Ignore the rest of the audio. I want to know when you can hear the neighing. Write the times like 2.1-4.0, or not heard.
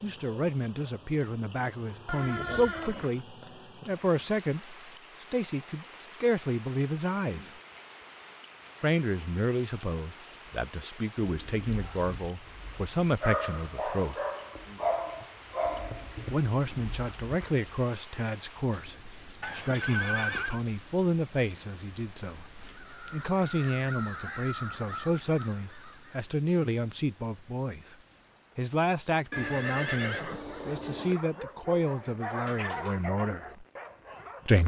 2.0-3.1, 19.4-20.6, 29.3-31.2.